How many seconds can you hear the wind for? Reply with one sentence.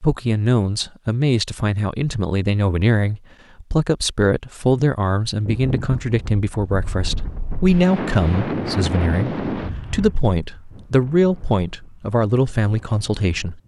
The wind can be heard for 8 seconds in total.